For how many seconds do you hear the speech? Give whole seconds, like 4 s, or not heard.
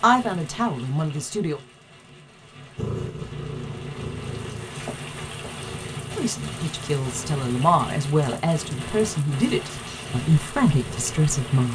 7 s.